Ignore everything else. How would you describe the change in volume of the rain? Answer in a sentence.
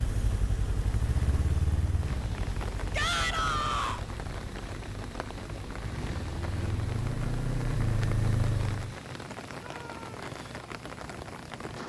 The volume of the rain stays about the same.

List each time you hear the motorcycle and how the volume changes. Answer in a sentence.
You can hear the motorcycle from 0.0 to 8.9 s, getting quieter then louder.